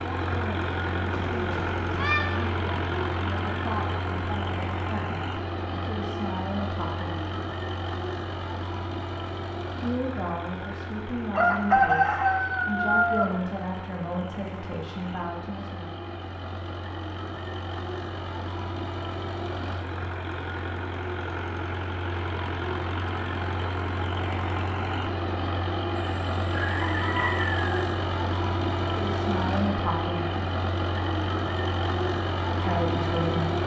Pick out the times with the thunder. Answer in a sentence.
The thunder can't be heard in this clip.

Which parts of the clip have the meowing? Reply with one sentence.
You can hear the meowing from 1.3 to 2.5 s.